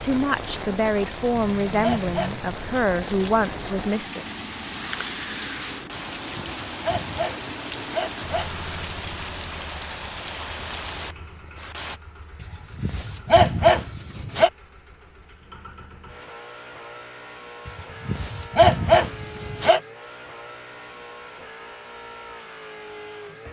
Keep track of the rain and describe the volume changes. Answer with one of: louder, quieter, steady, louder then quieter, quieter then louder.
steady.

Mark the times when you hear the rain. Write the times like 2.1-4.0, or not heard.
0.0-12.0.